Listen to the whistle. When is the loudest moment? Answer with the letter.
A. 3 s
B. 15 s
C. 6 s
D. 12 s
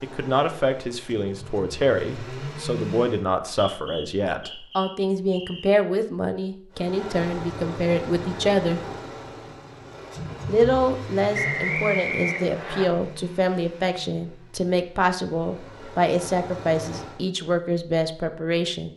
D.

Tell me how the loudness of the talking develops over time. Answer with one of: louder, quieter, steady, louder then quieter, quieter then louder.
steady.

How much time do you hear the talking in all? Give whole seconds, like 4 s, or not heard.
17 s.